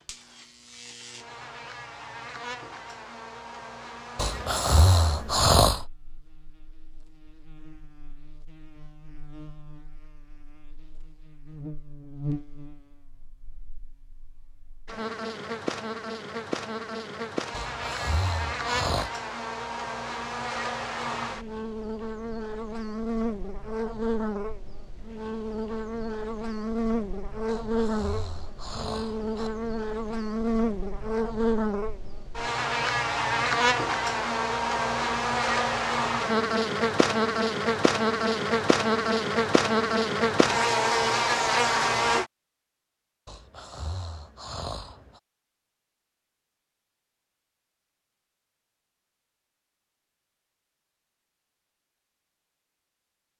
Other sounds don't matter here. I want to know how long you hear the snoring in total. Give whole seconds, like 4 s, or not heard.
7 s.